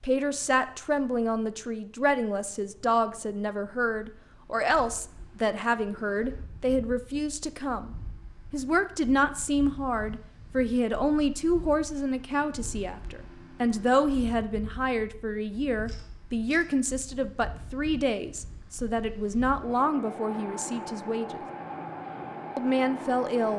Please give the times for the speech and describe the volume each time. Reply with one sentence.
You can hear the speech from 0.0 to 21.4 s, at a steady volume; and briefly from 22.6 to 23.5 s.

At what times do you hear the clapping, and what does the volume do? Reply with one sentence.
You can't hear the clapping here.